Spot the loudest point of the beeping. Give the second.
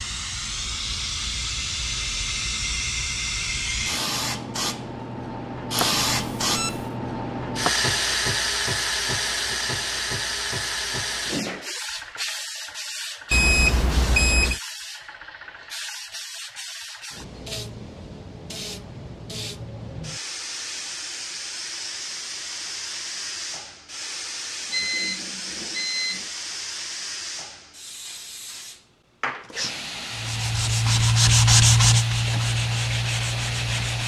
14 s.